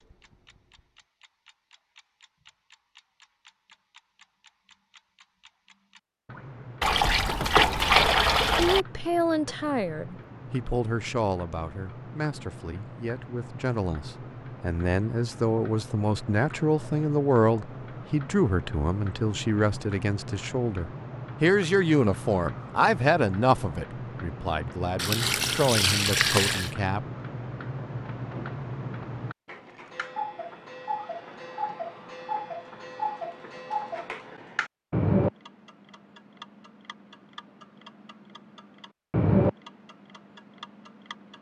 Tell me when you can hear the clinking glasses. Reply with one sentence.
You can't hear the clinking glasses here.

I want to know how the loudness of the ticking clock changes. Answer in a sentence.
The loudness of the ticking clock goes up.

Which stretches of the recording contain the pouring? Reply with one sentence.
The pouring can be heard from 6.8 to 8.8 s and from 24.9 to 26.7 s.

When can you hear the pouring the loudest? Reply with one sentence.
The loudest moment of the pouring is at 8 seconds.